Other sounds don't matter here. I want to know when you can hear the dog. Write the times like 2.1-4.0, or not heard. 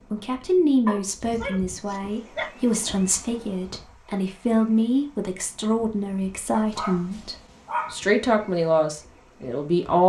0.8-2.5, 6.5-8.0.